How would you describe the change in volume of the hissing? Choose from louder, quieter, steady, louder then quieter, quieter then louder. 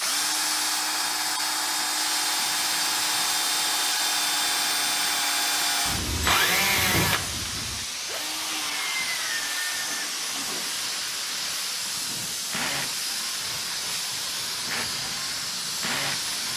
steady.